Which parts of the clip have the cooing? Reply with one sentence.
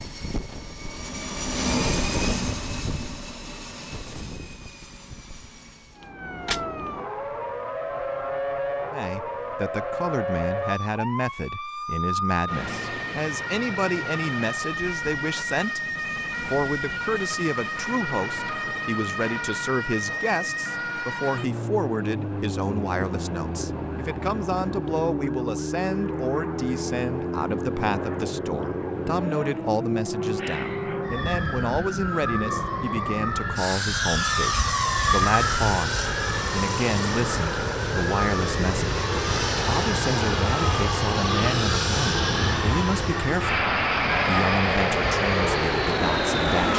The cooing can't be heard in this clip.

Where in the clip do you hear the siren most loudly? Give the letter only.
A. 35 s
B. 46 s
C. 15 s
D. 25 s
A.